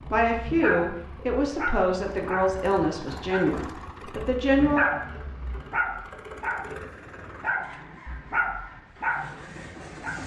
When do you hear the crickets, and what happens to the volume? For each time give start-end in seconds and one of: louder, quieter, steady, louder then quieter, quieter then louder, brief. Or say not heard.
not heard.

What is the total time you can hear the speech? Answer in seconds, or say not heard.
5 s.